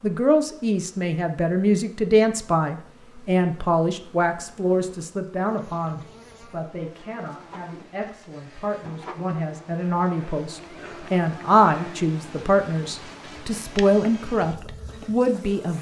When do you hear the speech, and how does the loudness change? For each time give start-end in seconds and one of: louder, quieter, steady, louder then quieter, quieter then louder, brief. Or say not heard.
0.0-15.7 quieter then louder.